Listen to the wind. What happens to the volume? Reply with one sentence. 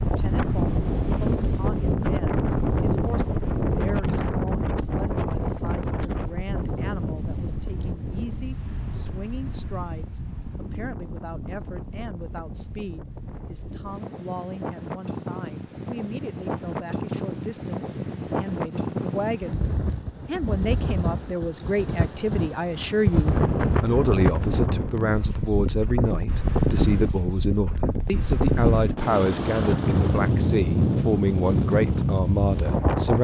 The loudness of the wind goes down, then up.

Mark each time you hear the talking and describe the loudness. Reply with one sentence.
The talking can be heard from 0.0 to 33.1 s, getting louder.